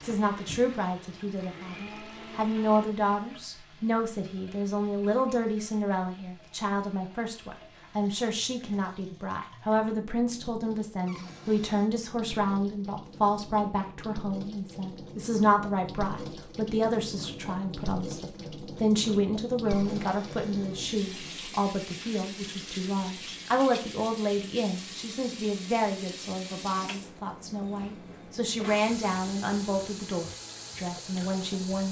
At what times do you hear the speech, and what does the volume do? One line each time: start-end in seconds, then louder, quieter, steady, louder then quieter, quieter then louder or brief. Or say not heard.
0.0-31.8 steady.